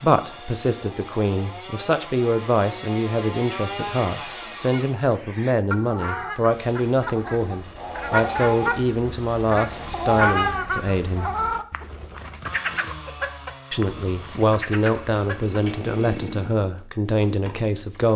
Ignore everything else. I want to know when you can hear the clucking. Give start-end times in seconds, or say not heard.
4.7-15.8.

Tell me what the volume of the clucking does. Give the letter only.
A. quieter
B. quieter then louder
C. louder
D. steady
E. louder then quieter
E.